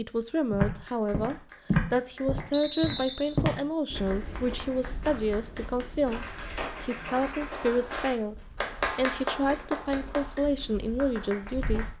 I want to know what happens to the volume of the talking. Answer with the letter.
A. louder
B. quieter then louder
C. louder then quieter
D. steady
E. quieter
D.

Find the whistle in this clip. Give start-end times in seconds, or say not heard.
2.5-3.4.